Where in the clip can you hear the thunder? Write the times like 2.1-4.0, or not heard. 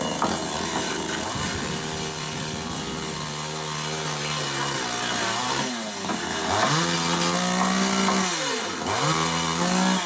1.3-3.4.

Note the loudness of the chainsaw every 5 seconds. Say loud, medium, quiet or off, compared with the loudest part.
medium, loud.